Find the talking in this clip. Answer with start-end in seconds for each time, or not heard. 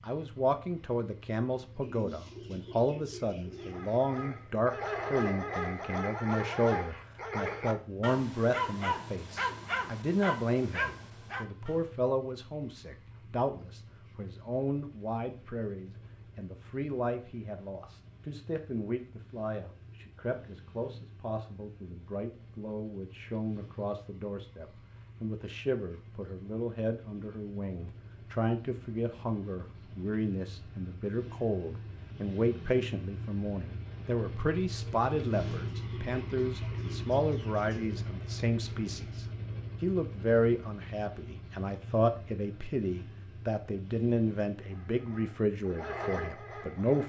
0.0-47.0.